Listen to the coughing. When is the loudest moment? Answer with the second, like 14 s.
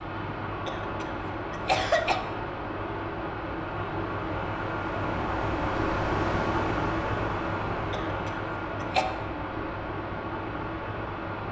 2 s.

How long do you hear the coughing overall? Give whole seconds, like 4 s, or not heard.
3 s.